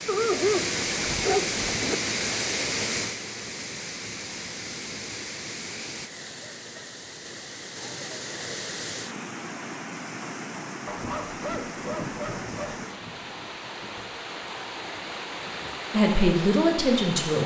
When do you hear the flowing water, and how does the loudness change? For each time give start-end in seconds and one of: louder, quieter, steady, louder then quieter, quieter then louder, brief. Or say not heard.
0.0-17.4 quieter.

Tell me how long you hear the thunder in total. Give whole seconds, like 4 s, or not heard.
5 s.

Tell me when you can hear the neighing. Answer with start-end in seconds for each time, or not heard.
not heard.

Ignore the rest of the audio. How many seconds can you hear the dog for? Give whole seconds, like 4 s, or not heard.
4 s.